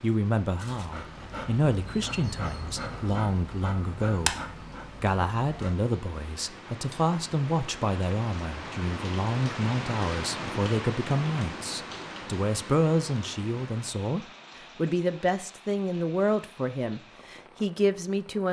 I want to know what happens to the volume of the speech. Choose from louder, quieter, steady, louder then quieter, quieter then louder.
steady.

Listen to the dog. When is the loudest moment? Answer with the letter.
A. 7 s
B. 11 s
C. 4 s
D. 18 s
C.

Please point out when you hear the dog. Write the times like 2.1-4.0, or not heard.
0.6-5.8.